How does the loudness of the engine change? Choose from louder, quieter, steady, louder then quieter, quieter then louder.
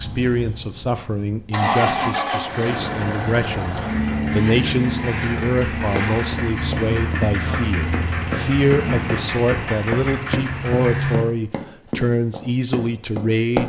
steady.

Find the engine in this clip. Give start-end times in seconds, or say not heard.
0.0-11.2.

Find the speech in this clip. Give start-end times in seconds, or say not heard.
0.0-13.6.